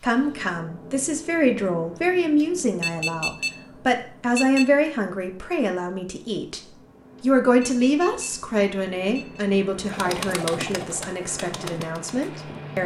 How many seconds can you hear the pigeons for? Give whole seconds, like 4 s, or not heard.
3 s.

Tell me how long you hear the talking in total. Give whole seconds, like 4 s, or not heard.
13 s.